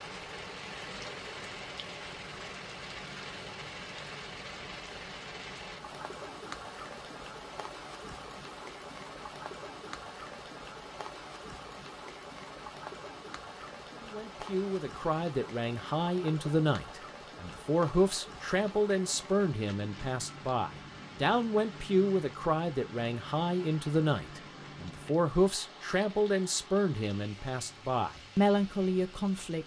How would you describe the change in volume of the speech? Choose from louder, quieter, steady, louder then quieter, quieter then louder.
steady.